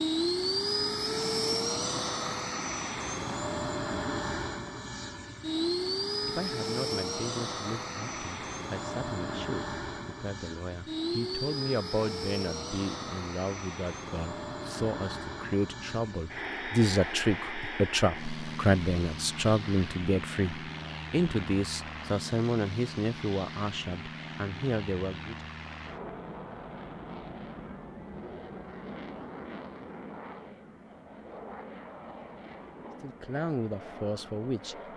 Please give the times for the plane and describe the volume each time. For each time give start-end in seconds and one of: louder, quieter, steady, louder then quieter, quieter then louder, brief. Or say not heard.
0.0-34.9 quieter.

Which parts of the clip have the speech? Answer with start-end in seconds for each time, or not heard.
6.2-25.4, 33.0-34.8.